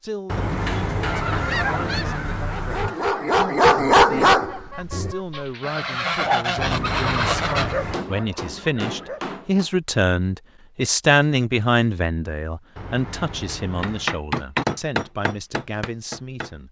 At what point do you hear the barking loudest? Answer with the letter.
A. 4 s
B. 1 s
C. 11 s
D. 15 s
A.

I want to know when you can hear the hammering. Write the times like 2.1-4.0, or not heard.
7.8-9.7, 13.8-16.6.